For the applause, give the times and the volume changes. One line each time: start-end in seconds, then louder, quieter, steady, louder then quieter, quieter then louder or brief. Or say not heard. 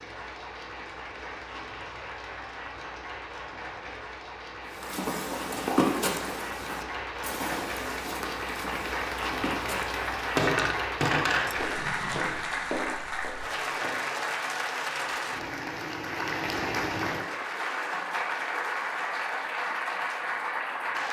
0.0-21.0 louder.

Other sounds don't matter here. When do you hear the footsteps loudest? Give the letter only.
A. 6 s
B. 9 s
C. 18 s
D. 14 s
A.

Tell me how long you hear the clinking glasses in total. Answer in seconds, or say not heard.
2 s.